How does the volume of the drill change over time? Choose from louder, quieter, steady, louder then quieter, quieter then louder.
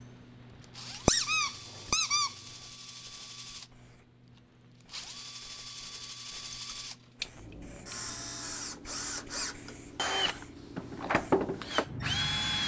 louder.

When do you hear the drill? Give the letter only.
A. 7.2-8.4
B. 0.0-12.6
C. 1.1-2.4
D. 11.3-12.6
B.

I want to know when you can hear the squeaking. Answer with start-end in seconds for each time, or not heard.
1.1-2.4.